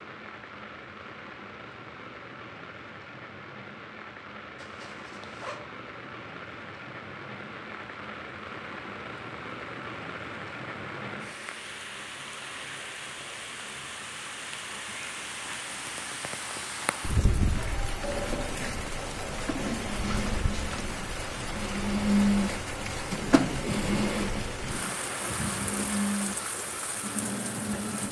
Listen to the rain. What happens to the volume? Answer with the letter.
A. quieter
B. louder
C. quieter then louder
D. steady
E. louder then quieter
B.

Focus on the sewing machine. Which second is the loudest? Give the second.
22 s.